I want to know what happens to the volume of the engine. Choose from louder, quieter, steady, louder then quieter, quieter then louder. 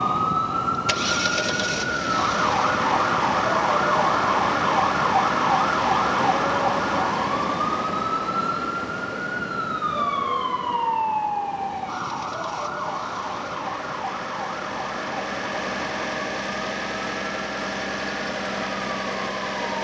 quieter then louder.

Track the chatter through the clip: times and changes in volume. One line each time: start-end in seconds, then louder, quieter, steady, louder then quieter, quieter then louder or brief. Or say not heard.
not heard.